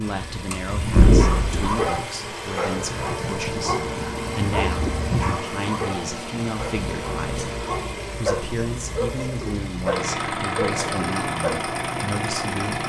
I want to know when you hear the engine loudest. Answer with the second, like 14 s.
1 s.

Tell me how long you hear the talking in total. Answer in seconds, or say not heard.
13 s.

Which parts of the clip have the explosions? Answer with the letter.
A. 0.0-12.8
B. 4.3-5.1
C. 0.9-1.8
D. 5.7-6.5
C.